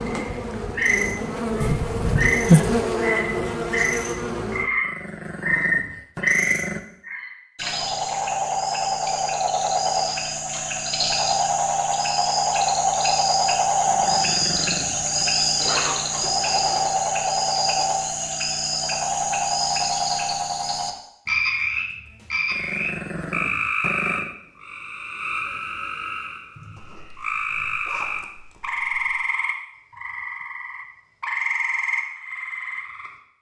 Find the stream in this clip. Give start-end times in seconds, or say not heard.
not heard.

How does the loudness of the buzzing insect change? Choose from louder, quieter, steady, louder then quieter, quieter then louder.
louder then quieter.